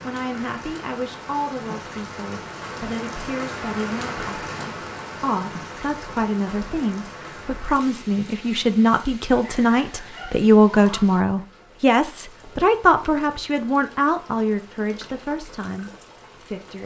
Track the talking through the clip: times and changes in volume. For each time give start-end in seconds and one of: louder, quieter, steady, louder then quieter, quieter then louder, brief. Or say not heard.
0.0-16.8 louder then quieter.